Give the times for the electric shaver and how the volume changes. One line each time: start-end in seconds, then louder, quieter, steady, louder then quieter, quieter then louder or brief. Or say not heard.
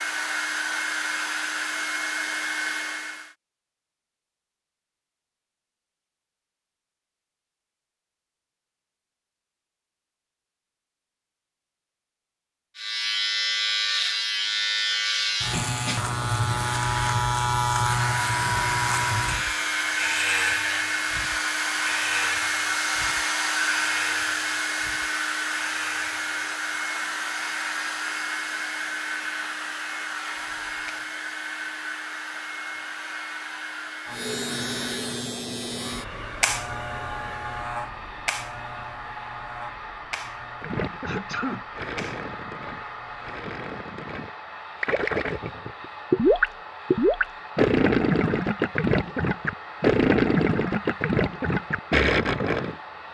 12.8-31.1 quieter
34.0-43.5 quieter.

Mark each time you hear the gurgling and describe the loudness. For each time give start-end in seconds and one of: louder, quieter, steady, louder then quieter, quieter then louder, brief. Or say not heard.
40.6-52.8 louder.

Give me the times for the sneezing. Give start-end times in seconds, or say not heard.
41.0-41.6.